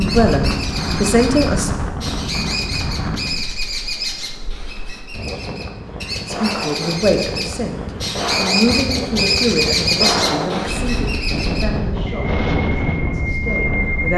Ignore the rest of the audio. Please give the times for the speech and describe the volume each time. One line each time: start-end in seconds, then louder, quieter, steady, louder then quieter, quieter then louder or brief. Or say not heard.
0.0-1.7 brief
6.2-14.1 quieter.